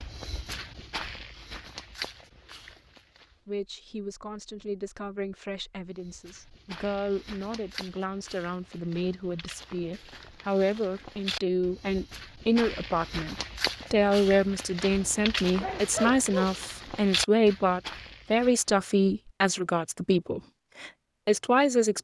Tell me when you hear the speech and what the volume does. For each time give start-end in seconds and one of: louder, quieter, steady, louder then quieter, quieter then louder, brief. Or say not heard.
3.5-22.0 louder.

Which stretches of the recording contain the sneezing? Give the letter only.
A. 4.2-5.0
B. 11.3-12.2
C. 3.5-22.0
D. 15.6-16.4
D.